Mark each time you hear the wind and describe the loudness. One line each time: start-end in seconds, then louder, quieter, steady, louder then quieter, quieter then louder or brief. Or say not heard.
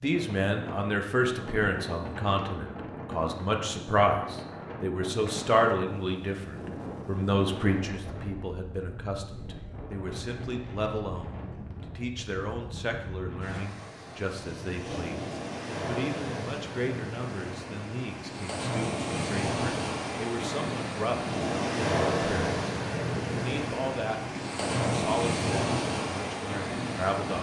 0.0-27.3 louder.